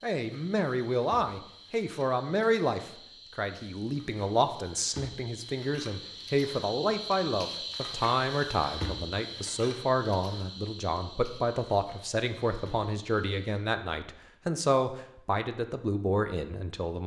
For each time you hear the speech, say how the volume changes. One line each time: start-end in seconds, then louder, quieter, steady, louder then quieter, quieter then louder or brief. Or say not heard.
0.0-17.0 steady.